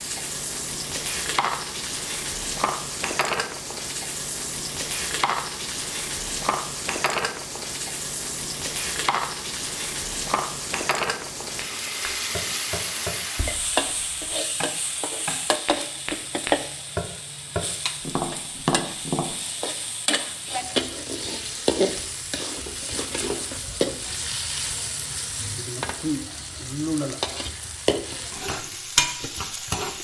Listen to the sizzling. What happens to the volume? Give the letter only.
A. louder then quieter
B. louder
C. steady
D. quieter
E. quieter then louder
C.